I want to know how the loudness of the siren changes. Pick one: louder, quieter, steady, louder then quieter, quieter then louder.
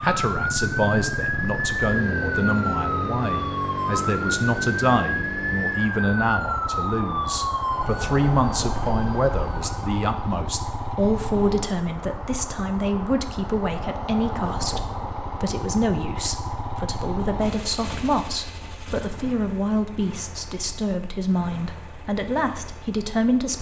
quieter.